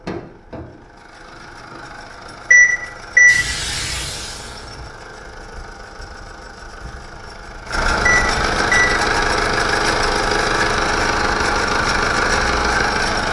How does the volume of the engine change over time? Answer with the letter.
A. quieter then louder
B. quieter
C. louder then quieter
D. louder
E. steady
D.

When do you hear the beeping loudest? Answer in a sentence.
The volume of the beeping peaks at 3 seconds.